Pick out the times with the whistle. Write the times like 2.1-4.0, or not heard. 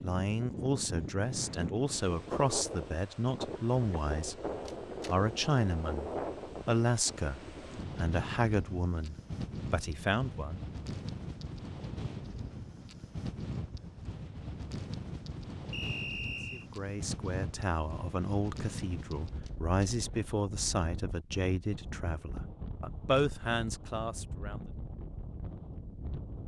15.7-16.6.